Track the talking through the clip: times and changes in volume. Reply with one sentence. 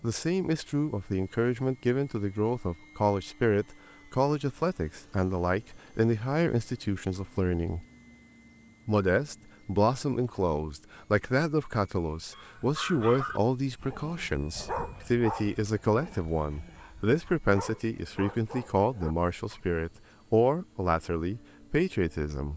The talking can be heard from 0.0 to 7.8 s, at a steady volume; and from 8.8 to 22.5 s, at a steady volume.